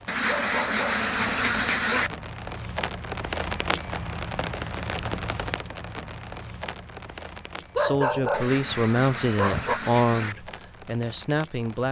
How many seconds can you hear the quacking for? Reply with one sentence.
The quacking can be heard for 4 seconds in total.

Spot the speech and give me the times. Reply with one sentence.
The speech can be heard from 7.8 to 11.8 s.